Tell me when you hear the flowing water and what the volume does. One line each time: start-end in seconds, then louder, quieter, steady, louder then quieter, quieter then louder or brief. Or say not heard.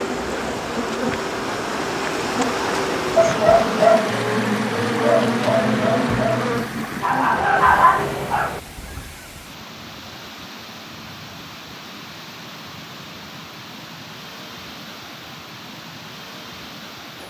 0.0-17.2 quieter.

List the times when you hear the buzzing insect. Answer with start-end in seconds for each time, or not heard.
0.0-7.4.